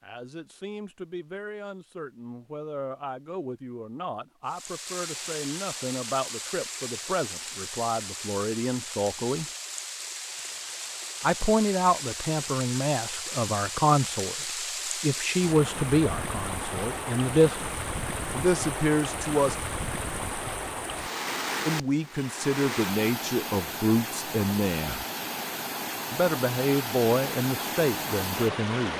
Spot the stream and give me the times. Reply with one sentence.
You can hear the stream from 4.5 to 28.9 s.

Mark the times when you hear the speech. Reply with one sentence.
The speech can be heard from 0.0 to 9.4 s, from 11.2 to 17.6 s, from 18.3 to 19.6 s, from 21.6 to 25.1 s and from 26.1 to 28.9 s.